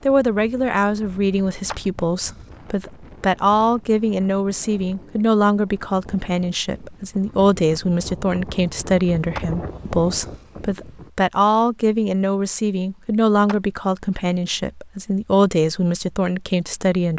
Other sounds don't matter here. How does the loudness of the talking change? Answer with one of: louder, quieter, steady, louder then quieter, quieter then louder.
steady.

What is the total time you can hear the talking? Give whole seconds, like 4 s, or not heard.
17 s.